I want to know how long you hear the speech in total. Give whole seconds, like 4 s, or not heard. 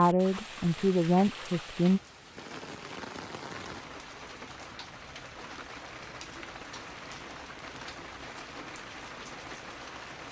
2 s.